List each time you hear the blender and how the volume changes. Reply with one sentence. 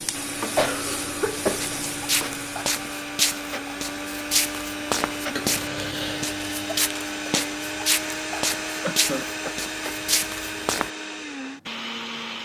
The blender can be heard from 0.1 to 12.4 s, at a steady volume.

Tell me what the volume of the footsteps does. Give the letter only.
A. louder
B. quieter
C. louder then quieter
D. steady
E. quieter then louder
D.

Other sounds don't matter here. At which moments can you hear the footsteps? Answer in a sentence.
You can hear the footsteps from 1.6 to 10.9 s.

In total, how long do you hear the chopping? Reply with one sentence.
You can't hear the chopping here.